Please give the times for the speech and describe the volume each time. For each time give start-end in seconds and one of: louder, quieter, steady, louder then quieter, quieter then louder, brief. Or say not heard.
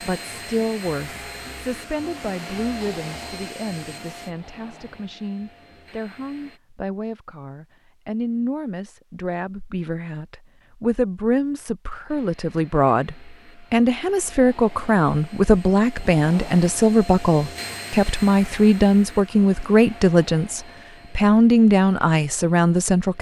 0.1-23.1 louder.